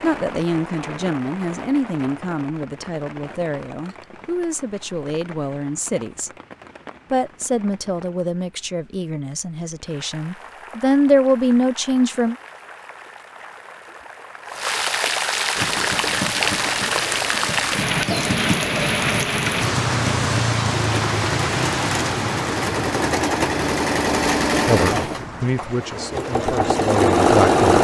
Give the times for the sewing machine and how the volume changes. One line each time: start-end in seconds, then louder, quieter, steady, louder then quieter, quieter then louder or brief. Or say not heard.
15.6-27.7 louder.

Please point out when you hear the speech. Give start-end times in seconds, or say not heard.
0.0-6.3, 7.1-12.3, 24.6-27.7.